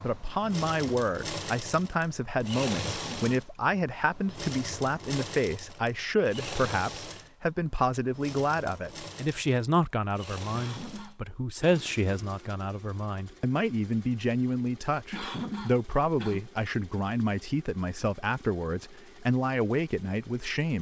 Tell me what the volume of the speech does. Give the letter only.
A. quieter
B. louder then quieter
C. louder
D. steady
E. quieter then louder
D.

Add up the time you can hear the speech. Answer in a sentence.
The speech can be heard for 21 seconds in total.